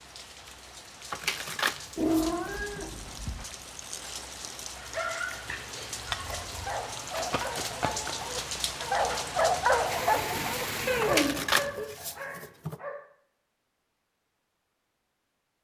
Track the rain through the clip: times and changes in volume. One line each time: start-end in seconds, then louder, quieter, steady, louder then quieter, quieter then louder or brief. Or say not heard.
0.0-11.3 louder.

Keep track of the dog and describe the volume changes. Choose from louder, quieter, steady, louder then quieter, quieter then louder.
louder then quieter.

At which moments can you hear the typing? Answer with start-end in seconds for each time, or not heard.
not heard.